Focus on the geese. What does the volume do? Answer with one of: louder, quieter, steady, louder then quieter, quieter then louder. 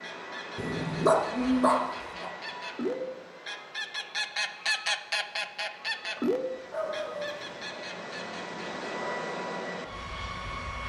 louder then quieter.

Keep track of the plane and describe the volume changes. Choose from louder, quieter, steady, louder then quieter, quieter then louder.
quieter then louder.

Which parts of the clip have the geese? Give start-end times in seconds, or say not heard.
0.0-8.8.